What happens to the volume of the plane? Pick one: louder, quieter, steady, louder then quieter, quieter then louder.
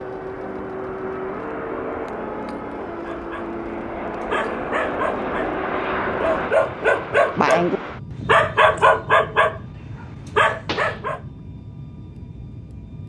quieter.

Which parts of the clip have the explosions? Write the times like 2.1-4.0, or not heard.
10.7-11.1.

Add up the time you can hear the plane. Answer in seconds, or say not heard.
13 s.